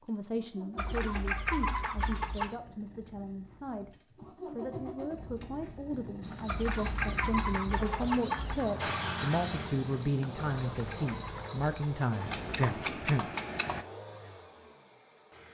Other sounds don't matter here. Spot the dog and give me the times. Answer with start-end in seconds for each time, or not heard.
not heard.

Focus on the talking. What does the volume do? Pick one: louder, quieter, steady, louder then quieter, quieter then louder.
louder.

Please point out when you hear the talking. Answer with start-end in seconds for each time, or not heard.
0.0-13.2.